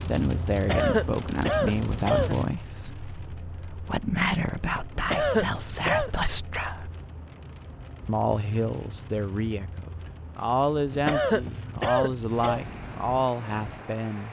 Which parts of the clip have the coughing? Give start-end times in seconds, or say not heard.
0.6-2.4, 5.0-6.1, 10.9-12.7.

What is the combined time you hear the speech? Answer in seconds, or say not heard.
13 s.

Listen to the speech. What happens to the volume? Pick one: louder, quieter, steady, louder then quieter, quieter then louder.
steady.